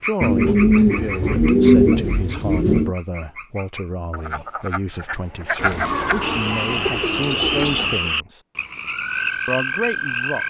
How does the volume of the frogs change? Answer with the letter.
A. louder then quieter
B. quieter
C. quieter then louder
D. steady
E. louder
C.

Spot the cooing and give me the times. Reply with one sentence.
You can hear the cooing from 0.2 to 2.9 s and from 5.5 to 8.1 s.